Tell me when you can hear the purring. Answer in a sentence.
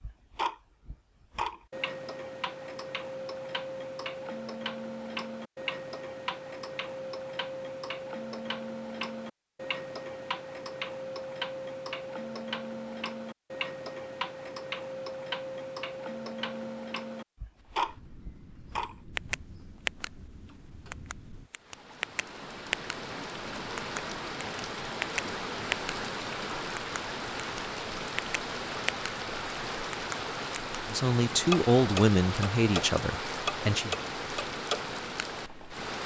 The purring can't be heard in this clip.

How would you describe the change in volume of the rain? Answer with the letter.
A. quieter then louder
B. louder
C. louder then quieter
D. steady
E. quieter
B.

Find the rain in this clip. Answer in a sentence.
You can hear the rain from 17.6 to 36.0 s.